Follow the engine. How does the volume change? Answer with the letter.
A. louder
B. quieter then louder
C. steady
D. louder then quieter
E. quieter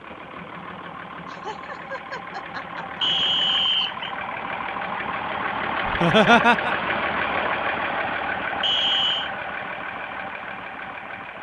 D.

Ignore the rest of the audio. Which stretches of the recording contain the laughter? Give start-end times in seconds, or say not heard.
1.2-3.1, 5.8-6.8.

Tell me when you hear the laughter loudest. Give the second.
6 s.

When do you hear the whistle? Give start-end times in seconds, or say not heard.
3.0-4.2, 8.6-9.3.